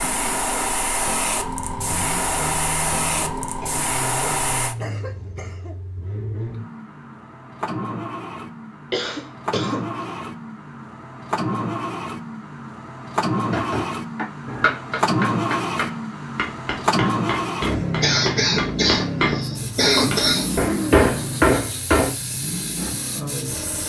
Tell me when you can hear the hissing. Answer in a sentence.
You can hear the hissing from 0.0 to 4.8 s and from 19.4 to 23.8 s.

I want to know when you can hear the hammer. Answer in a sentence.
You can hear the hammer from 13.5 to 22.1 s.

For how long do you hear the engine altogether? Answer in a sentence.
You can hear the engine for 24 seconds altogether.